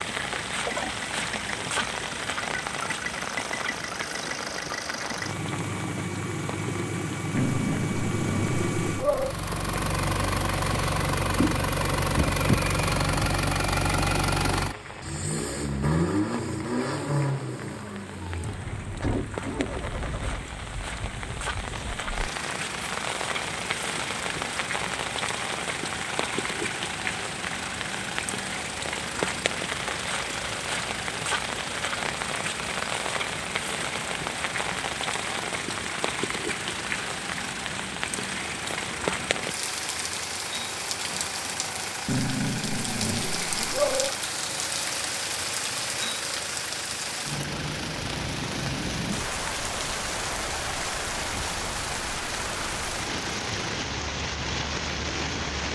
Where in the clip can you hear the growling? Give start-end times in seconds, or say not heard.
7.3-9.3, 42.0-44.1.